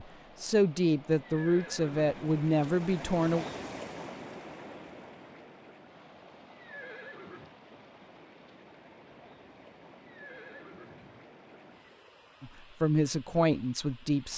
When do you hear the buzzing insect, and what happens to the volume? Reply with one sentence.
The buzzing insect can't be heard in this clip.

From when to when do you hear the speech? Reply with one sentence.
You can hear the speech from 0.0 to 3.5 s and from 12.4 to 14.3 s.